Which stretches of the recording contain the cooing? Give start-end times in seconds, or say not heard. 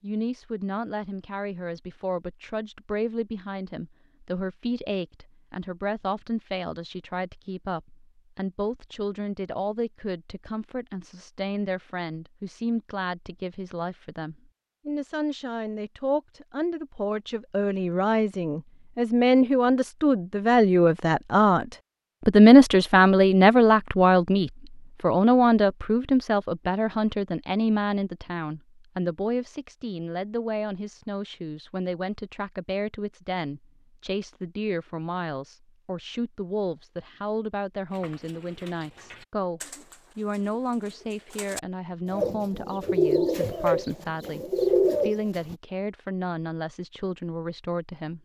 37.9-45.5.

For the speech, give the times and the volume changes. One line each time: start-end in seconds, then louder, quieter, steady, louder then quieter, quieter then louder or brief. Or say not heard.
0.0-48.2 louder then quieter.